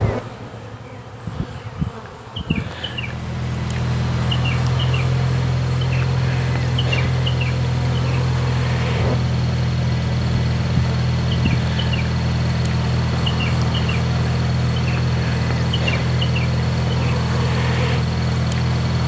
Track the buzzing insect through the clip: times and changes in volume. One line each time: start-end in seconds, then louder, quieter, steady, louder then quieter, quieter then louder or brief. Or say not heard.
0.0-19.0 steady.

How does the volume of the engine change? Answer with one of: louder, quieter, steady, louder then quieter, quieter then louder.
steady.